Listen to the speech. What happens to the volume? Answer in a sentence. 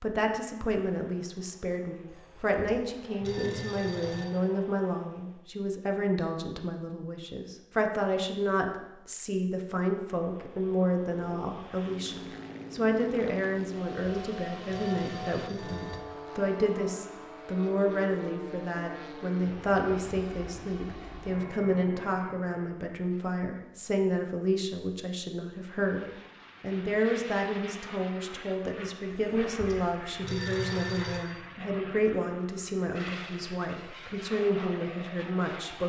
The volume of the speech stays about the same.